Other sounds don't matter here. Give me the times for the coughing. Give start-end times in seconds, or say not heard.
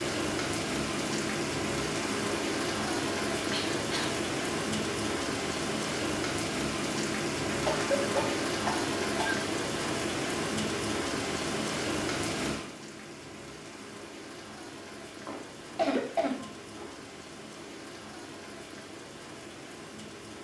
3.5-4.2, 7.5-9.3, 15.2-16.9.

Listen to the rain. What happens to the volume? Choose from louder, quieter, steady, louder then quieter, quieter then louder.
quieter.